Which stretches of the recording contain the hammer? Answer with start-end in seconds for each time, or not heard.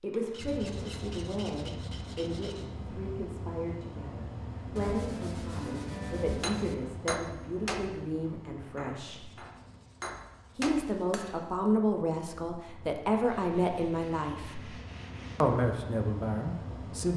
6.4-11.4.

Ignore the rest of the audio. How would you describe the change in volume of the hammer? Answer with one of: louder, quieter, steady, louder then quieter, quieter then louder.
quieter then louder.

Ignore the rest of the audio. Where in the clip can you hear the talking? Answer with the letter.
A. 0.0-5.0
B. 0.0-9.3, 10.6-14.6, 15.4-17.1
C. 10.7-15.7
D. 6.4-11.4
B.